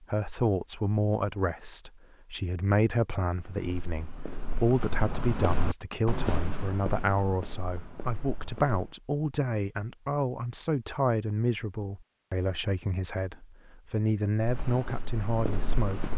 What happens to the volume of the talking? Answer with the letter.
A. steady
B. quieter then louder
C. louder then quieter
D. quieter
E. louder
A.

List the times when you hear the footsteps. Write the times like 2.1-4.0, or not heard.
3.4-9.0, 14.4-16.1.